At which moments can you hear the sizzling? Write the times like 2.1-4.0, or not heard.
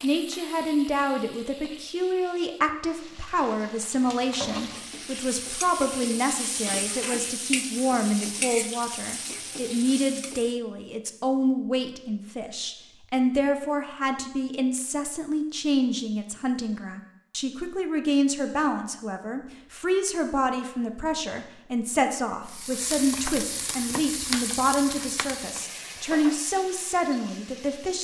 0.0-10.6, 22.4-27.9.